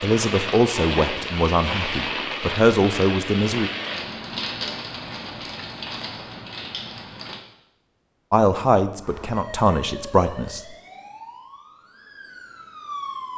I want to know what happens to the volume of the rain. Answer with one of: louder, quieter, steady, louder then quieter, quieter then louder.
quieter.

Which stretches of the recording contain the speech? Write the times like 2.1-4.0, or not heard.
0.0-3.7, 8.3-10.6.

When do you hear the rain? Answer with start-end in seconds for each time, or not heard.
0.0-7.4.